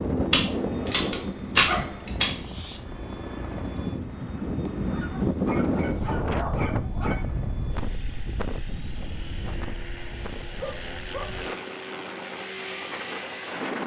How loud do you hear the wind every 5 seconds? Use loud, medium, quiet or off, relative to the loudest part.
loud, loud, medium.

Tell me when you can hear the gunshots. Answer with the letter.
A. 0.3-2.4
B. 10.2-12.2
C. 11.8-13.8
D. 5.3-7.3
A.